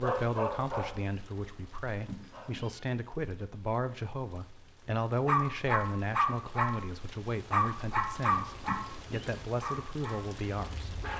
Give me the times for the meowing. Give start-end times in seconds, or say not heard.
2.0-2.9, 8.6-9.3.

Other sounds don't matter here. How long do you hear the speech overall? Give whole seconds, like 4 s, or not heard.
11 s.